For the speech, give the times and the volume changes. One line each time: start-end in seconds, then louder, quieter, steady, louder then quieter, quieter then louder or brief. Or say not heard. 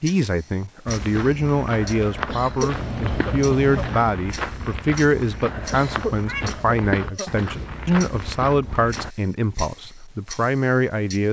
0.0-11.2 steady.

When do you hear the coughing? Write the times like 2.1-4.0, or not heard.
2.2-4.0, 5.7-7.5.